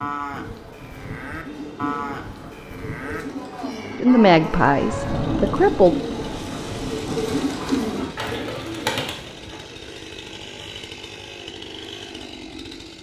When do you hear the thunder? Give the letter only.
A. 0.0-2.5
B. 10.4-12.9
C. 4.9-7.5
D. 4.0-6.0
C.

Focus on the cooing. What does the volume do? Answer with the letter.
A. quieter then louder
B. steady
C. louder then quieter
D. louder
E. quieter
D.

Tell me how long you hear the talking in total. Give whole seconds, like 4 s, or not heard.
2 s.